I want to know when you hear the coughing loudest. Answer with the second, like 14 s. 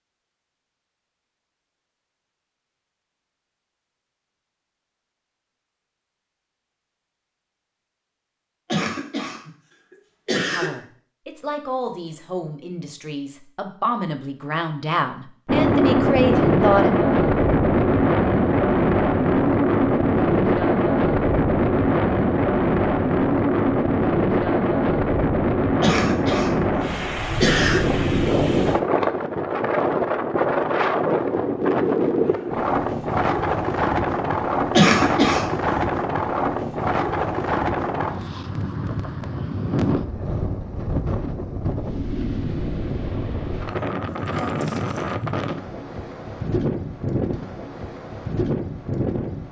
35 s.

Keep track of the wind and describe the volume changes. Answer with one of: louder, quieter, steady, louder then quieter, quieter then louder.
quieter.